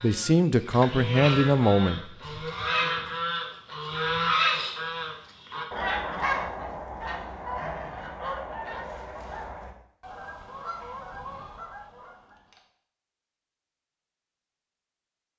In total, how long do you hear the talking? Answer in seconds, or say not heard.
2 s.